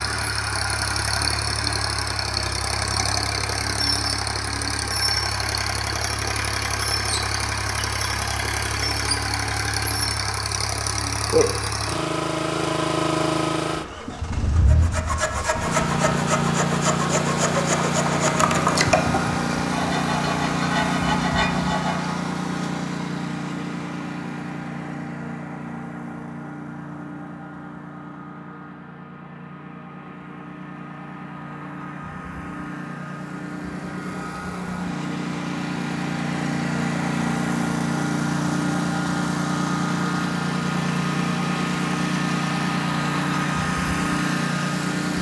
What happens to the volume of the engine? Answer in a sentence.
The loudness of the engine goes down, then up.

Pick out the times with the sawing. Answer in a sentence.
You can hear the sawing from 14.7 to 22.2 s.